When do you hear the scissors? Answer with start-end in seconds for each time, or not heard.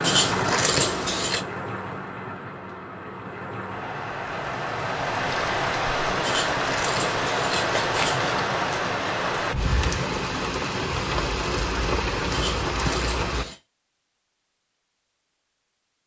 0.0-1.4, 6.2-8.4, 12.3-13.6.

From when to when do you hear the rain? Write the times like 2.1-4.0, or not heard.
0.0-13.4.